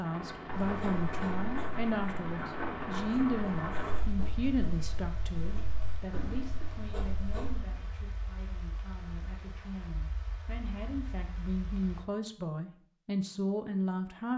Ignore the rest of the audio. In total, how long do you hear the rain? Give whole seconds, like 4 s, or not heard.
12 s.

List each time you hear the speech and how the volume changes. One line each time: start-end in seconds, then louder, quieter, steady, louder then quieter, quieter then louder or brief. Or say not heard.
0.0-14.3 quieter then louder.